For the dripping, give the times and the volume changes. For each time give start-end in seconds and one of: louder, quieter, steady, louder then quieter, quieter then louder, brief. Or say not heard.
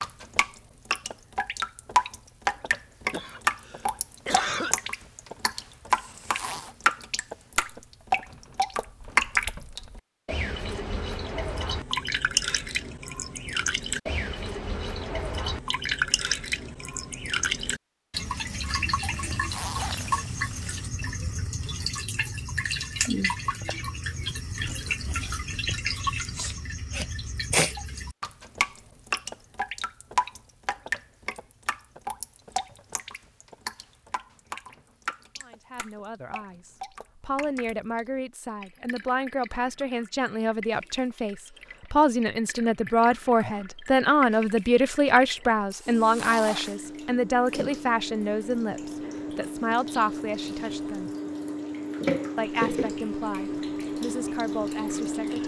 0.0-55.4 quieter then louder.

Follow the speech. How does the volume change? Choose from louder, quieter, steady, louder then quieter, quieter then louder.
louder then quieter.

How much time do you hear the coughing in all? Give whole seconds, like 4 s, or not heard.
2 s.